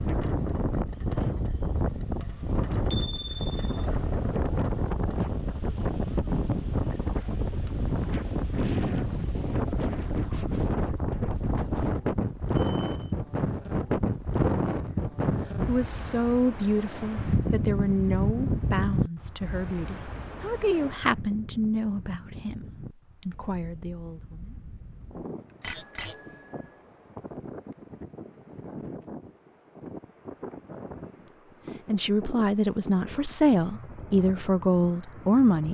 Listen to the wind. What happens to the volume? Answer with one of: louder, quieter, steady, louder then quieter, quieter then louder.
quieter.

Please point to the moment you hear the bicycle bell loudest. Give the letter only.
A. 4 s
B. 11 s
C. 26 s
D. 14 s
C.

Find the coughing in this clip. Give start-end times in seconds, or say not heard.
not heard.